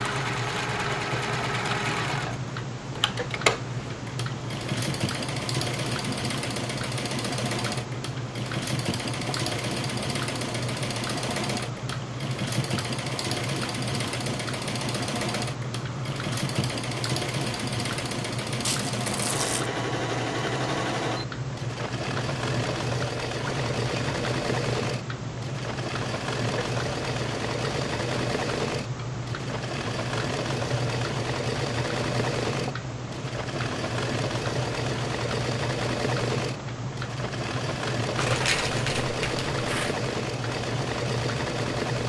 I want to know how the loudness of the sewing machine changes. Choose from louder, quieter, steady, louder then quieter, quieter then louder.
steady.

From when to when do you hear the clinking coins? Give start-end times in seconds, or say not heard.
38.1-40.0.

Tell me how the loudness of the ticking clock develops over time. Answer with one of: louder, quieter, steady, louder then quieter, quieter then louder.
steady.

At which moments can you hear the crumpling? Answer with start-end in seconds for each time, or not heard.
18.6-19.7.